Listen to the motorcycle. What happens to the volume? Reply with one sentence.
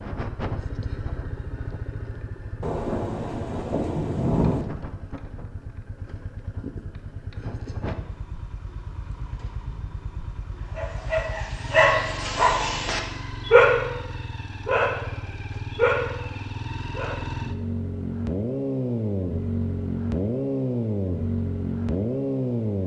The volume of the motorcycle goes up.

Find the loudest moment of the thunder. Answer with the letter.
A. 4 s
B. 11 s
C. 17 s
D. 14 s
A.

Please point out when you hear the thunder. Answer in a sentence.
You can hear the thunder from 2.6 to 4.7 s.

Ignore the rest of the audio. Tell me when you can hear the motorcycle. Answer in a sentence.
The motorcycle can be heard from 0.0 to 22.8 s.